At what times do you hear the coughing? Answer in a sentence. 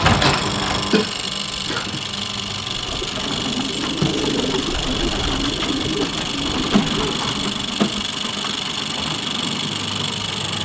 You can hear the coughing from 0.2 to 2.0 s.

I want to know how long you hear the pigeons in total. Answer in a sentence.
The pigeons can be heard for 5 seconds in total.